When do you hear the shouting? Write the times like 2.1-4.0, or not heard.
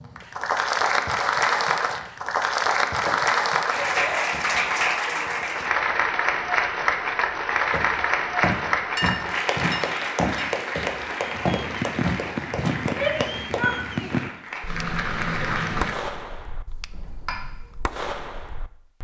12.8-14.3.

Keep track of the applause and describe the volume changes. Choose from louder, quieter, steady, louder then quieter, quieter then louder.
quieter.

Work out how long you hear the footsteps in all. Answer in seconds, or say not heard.
5 s.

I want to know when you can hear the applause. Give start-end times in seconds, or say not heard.
0.0-15.9.